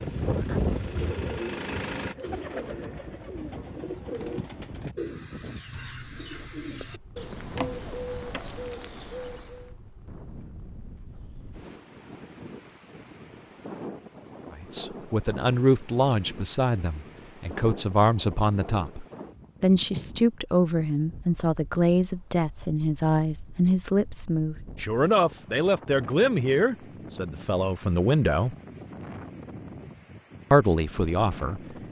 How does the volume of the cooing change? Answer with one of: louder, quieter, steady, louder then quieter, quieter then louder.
steady.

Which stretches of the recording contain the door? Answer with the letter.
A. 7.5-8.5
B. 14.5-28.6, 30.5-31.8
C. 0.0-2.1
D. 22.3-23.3
A.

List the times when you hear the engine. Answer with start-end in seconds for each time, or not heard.
0.0-2.1.